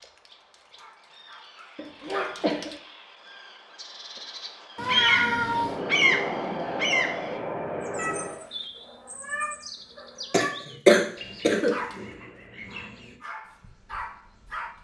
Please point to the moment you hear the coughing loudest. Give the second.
11 s.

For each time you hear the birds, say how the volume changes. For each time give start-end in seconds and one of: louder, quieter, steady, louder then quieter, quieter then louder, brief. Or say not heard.
0.0-14.7 louder then quieter.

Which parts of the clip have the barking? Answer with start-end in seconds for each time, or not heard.
0.0-2.8, 11.5-14.7.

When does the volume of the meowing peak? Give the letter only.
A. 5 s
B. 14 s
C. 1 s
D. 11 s
A.